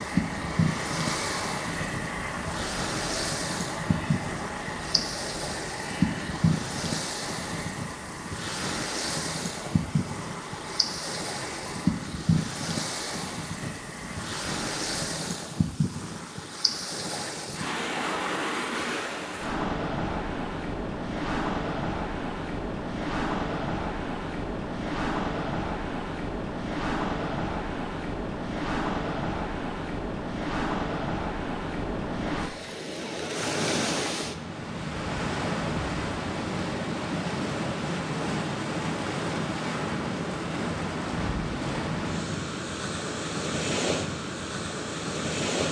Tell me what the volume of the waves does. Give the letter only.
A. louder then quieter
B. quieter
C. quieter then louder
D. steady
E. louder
D.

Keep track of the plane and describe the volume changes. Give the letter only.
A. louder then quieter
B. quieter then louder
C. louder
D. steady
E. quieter
E.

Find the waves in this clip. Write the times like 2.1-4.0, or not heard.
0.0-45.6.